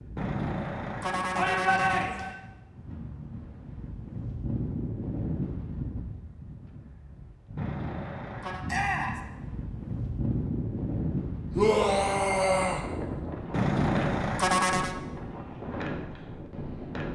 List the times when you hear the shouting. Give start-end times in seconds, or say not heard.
1.4-2.4, 8.7-9.2, 11.6-12.8.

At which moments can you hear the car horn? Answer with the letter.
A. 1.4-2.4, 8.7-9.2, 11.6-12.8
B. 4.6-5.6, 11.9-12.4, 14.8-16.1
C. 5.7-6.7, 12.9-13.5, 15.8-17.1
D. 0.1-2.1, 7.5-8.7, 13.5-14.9
D.